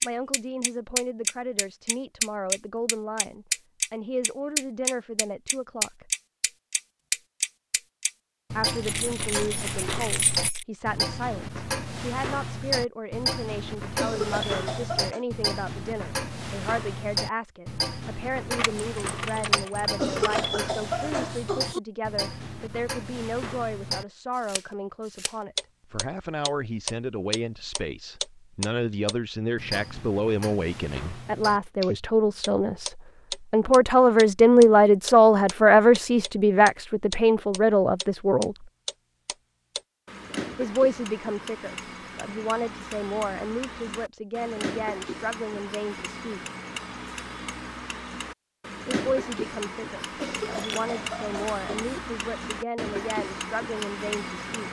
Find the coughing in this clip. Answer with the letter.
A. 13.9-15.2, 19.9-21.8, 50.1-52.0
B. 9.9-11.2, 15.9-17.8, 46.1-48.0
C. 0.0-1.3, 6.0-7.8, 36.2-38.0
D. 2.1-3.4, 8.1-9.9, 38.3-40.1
A.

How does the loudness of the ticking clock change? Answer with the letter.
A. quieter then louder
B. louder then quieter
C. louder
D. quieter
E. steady
D.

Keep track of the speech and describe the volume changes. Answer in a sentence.
The loudness of the speech goes up, then down.